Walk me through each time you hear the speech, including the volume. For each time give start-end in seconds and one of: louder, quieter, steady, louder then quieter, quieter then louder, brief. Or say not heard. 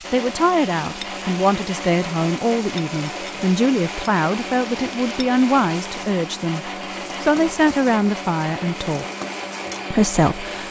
0.1-9.1 steady
9.9-10.6 brief.